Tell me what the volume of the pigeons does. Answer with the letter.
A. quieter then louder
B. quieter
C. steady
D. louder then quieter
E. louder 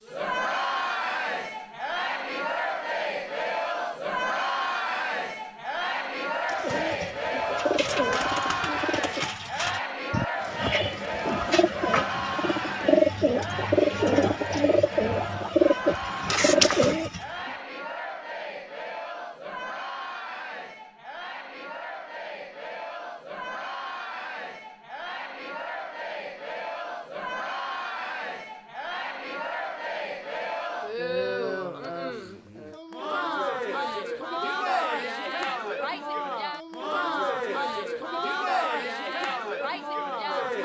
E.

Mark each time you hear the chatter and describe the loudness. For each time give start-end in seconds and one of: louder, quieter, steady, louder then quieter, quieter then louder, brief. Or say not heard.
0.0-40.6 quieter then louder.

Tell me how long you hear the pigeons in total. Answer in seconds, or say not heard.
11 s.